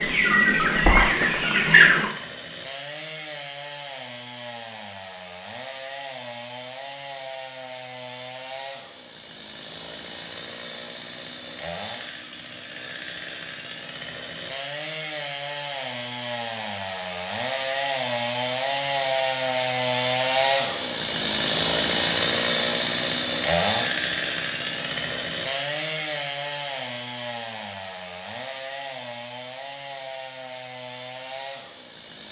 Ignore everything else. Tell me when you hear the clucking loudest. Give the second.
2 s.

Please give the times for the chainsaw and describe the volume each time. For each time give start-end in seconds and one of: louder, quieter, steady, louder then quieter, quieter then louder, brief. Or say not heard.
0.0-32.2 louder then quieter.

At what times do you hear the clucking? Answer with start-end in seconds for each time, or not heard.
0.0-2.1.